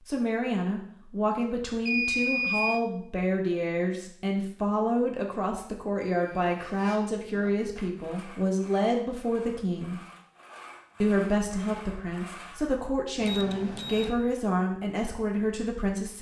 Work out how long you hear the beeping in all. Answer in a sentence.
The beeping can be heard for 3 seconds in total.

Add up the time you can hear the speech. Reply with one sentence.
The speech can be heard for 15 seconds in total.